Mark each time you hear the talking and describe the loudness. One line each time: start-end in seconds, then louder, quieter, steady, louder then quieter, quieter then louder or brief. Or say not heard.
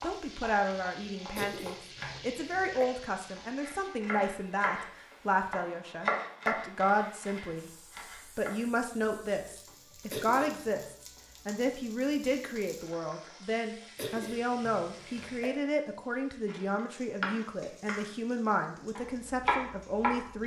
0.0-20.4 steady.